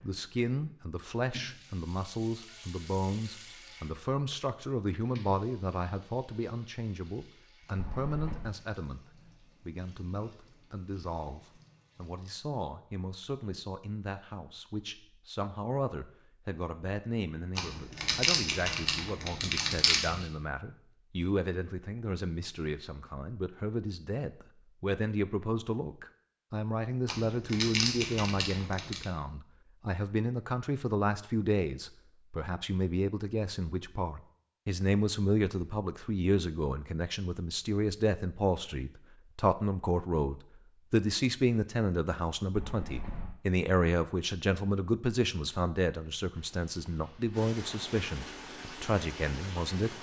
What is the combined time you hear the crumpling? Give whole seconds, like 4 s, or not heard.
5 s.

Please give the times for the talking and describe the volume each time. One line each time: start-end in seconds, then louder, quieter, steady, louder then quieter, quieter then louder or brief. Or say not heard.
0.0-9.0 steady
9.7-49.9 louder.